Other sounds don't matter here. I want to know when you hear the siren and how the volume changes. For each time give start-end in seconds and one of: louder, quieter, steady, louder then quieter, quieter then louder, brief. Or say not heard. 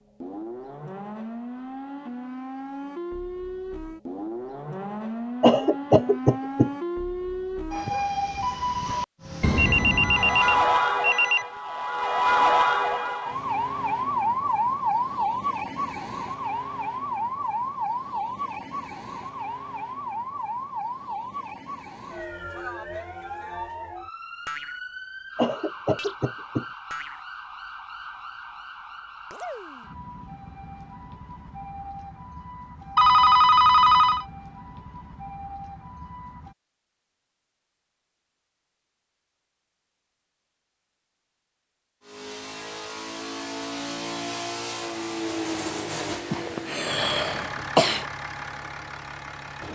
0.1-36.5 louder then quieter.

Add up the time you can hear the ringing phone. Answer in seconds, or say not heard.
3 s.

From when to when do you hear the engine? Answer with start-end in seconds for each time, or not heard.
42.0-49.6.